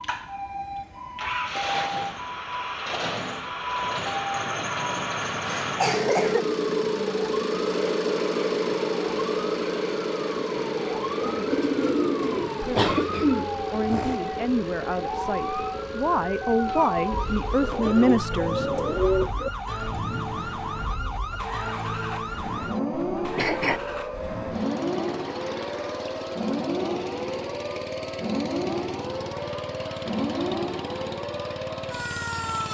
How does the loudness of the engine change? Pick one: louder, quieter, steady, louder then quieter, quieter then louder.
quieter.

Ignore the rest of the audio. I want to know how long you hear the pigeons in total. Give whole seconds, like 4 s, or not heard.
4 s.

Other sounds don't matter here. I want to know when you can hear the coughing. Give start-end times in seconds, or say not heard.
5.2-6.5, 12.8-14.2, 23.1-23.8.